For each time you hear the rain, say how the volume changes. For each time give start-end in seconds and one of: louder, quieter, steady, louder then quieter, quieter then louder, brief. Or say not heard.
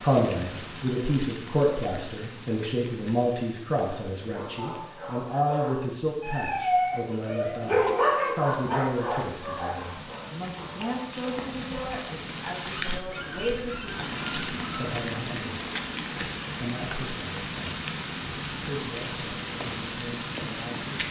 0.0-21.0 quieter then louder.